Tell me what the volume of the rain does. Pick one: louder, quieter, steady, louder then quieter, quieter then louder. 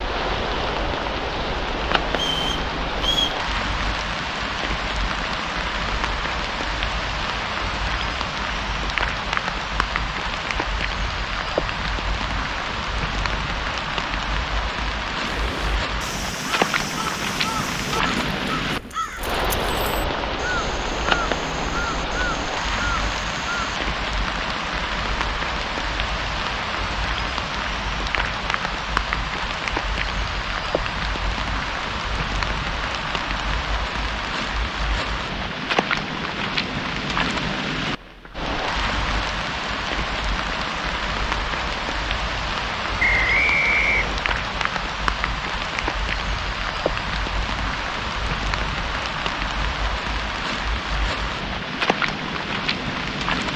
steady.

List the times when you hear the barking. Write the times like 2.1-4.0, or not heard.
not heard.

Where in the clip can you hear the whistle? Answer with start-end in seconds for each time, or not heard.
2.1-3.4, 43.0-44.3.